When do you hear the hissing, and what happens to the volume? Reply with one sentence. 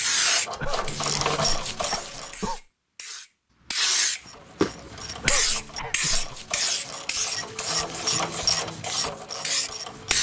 You can hear the hissing from 0.0 to 10.1 s, getting louder then quieter.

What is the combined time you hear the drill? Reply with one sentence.
You can't hear the drill here.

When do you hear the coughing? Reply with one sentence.
The coughing can be heard from 0.6 to 2.6 s and from 5.2 to 6.5 s.